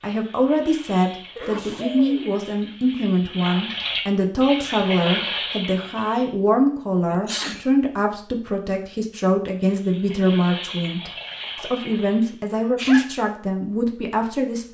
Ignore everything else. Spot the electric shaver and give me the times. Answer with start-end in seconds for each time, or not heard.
not heard.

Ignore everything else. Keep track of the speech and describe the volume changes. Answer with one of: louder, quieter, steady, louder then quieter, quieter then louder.
steady.